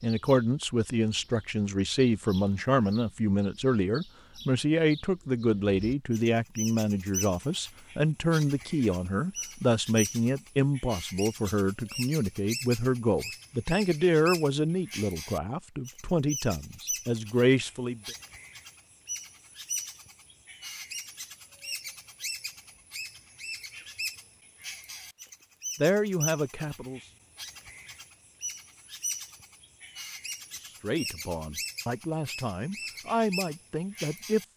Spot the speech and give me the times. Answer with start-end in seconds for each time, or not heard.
0.0-18.1, 25.8-27.0, 30.6-34.4.